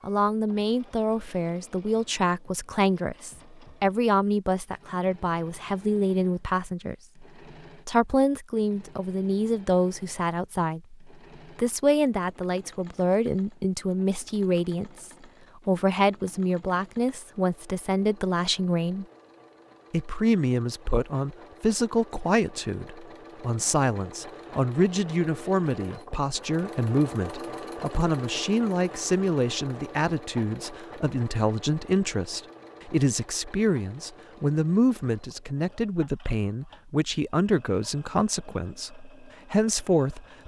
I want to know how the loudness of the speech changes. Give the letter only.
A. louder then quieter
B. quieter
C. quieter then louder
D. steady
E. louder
D.